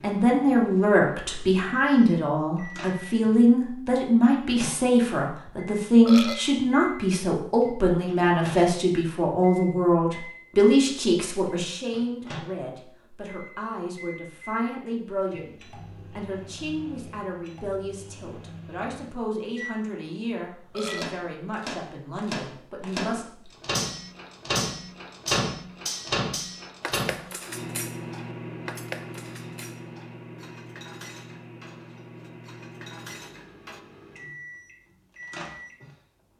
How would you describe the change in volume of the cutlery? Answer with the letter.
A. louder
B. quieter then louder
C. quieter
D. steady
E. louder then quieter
C.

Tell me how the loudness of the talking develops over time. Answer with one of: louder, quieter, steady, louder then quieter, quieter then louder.
quieter.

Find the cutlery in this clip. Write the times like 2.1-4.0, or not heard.
23.7-33.8.